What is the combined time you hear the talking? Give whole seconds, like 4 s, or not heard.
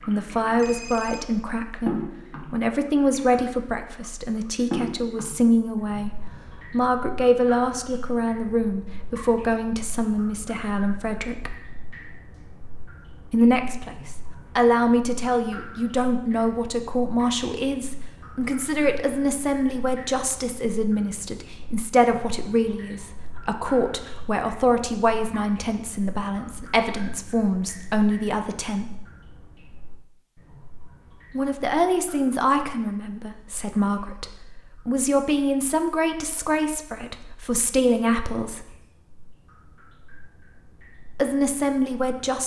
36 s.